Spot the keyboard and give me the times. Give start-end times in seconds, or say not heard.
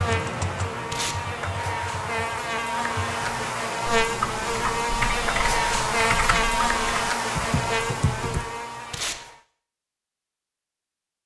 0.0-8.4.